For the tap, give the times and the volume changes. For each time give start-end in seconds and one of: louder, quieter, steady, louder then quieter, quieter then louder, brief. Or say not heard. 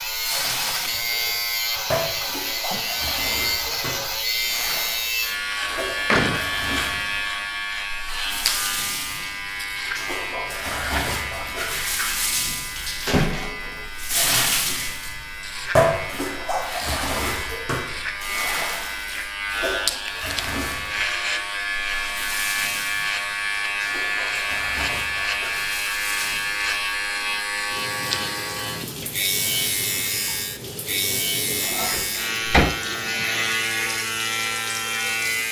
0.0-35.4 louder then quieter.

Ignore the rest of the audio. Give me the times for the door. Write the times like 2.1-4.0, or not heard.
5.7-6.4, 13.1-13.8, 31.8-32.8.